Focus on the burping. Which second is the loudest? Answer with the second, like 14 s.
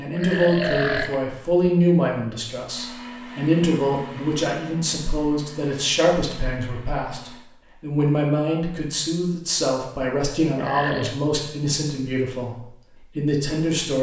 1 s.